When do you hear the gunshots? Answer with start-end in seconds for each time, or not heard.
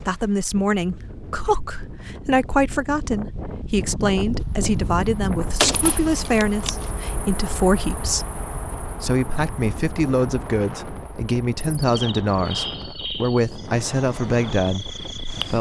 5.6-6.9.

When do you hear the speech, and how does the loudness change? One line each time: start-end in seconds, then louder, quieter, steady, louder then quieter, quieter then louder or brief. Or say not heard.
0.1-15.5 steady.